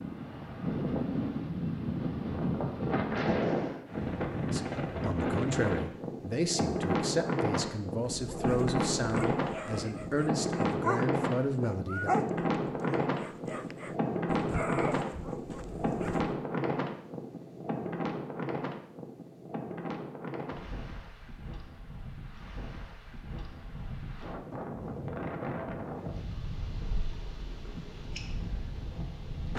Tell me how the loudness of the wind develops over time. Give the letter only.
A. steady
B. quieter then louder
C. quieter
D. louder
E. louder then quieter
C.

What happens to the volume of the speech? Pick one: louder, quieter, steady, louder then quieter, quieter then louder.
steady.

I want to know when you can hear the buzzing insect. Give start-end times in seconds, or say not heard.
not heard.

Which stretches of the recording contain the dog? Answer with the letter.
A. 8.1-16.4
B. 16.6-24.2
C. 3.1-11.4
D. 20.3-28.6
A.